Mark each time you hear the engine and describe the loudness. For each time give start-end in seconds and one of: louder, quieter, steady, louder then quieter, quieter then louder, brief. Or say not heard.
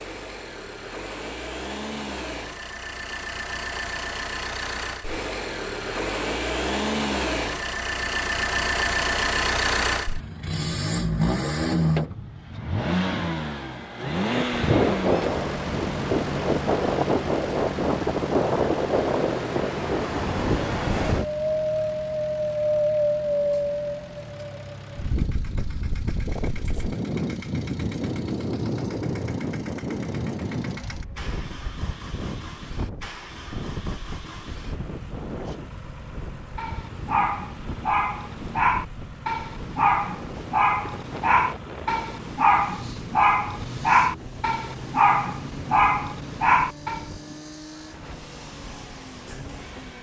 0.0-49.9 quieter.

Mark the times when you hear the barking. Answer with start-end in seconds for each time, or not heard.
36.5-47.0.